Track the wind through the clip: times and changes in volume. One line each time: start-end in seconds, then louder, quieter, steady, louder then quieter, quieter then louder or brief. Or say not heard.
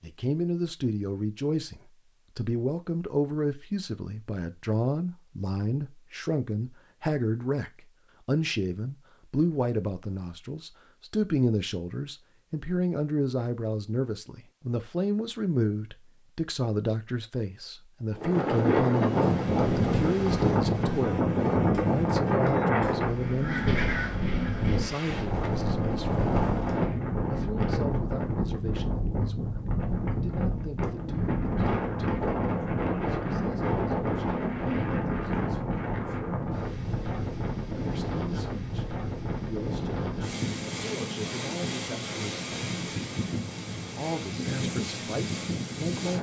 18.1-46.1 quieter.